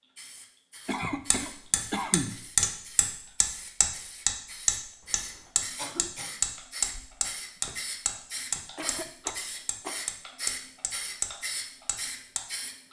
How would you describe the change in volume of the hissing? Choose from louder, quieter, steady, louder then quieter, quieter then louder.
louder.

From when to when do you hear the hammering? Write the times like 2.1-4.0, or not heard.
1.3-12.4.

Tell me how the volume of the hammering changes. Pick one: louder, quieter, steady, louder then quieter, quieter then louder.
quieter.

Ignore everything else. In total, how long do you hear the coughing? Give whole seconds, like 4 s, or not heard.
4 s.